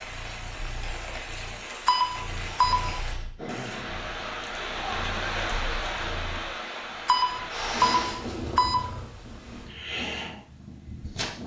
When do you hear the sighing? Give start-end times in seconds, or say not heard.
2.4-4.1, 7.5-8.2.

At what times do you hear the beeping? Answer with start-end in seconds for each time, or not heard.
1.9-3.0, 7.0-8.8.